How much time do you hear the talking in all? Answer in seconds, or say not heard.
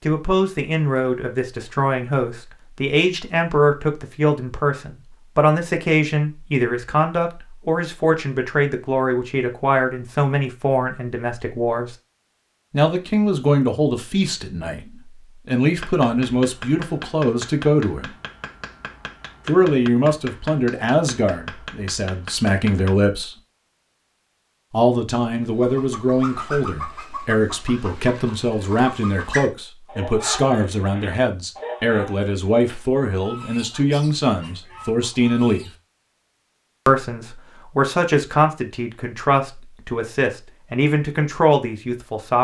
38 s.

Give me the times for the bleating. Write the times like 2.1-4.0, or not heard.
not heard.